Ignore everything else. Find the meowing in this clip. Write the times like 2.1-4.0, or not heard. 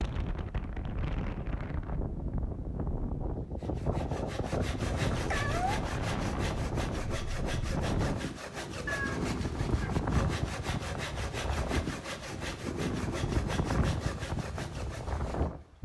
4.8-5.8, 8.8-9.9.